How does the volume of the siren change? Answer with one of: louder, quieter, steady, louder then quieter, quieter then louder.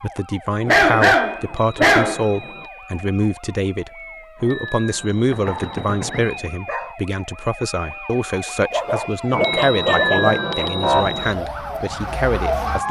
louder.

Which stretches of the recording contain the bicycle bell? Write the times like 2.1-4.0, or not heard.
1.4-2.7, 4.3-6.3, 9.3-11.3.